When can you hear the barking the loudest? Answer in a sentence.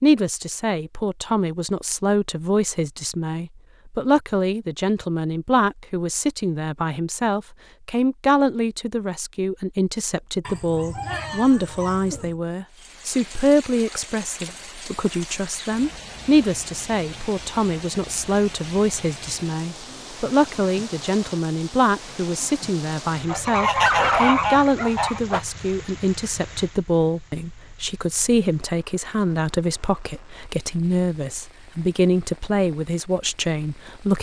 The volume of the barking peaks at 24 seconds.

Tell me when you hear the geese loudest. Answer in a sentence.
The volume of the geese peaks at 24 seconds.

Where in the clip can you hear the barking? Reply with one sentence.
You can hear the barking from 10.4 to 12.3 s and from 23.8 to 25.4 s.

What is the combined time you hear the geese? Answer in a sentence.
You can hear the geese for 2 seconds altogether.